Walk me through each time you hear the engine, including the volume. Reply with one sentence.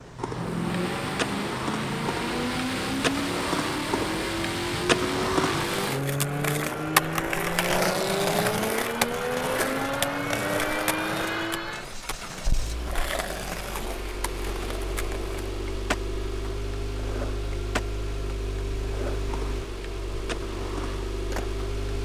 The engine can be heard from 0.0 to 21.9 s, getting quieter.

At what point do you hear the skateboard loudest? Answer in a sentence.
The volume of the skateboard peaks at 7 seconds.